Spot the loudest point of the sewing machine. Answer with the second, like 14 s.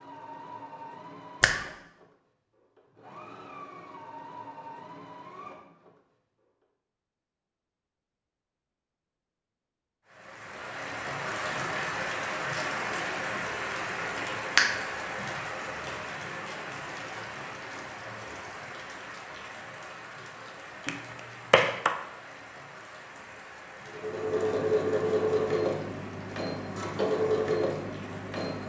25 s.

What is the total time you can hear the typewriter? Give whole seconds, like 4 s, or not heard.
not heard.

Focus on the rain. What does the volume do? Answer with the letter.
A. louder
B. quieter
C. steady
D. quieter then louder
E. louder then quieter
B.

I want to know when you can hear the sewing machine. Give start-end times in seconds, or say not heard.
0.0-6.0, 23.9-28.6.